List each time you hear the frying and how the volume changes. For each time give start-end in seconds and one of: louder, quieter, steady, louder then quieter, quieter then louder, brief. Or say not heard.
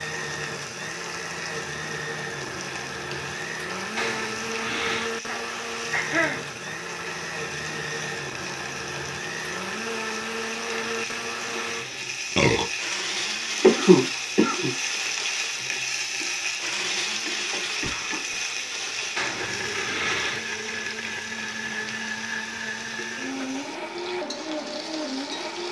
0.0-25.6 louder then quieter.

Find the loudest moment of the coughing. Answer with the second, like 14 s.
14 s.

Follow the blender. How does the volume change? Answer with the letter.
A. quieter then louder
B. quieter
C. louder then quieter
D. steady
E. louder
D.